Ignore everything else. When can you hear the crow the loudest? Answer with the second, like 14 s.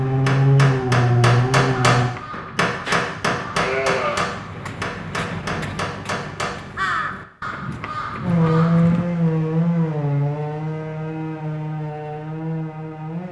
7 s.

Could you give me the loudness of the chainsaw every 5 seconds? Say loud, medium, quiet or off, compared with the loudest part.
loud, loud, medium.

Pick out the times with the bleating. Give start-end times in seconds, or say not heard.
2.9-4.2.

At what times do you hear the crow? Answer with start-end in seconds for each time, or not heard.
1.9-9.1.